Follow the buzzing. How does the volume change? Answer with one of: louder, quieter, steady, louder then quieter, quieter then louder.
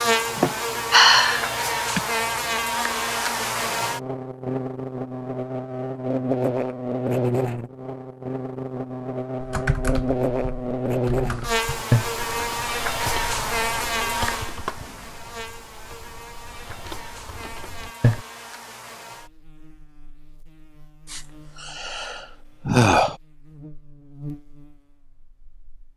quieter.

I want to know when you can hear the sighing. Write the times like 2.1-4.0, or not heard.
0.3-2.0, 21.1-23.1.